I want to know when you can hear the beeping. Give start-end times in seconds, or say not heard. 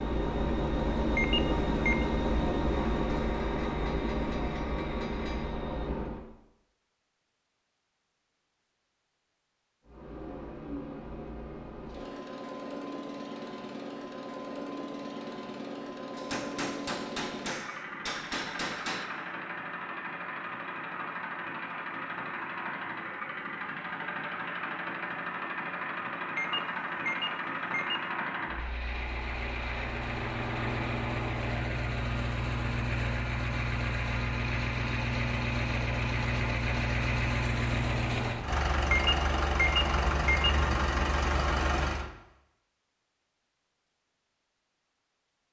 1.1-2.0, 26.4-28.0, 38.9-40.5.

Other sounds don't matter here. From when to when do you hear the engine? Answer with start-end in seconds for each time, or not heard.
0.0-6.2, 9.8-42.1.